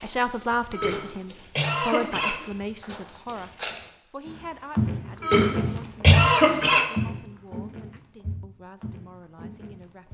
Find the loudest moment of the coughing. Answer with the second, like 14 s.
6 s.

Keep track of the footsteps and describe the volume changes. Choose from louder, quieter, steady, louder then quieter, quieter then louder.
louder then quieter.